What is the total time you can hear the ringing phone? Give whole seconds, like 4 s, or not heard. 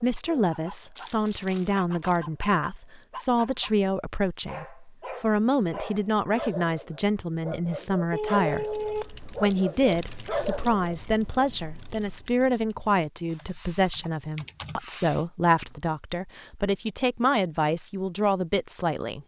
2 s.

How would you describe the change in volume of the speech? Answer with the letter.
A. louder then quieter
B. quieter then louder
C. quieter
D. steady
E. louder
D.